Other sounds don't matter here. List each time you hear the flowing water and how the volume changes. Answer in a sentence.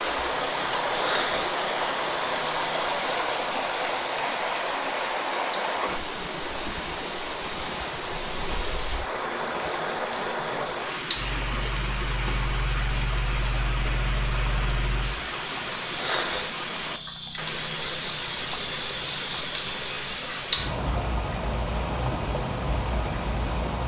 You can hear the flowing water from 0.0 to 23.8 s, getting quieter.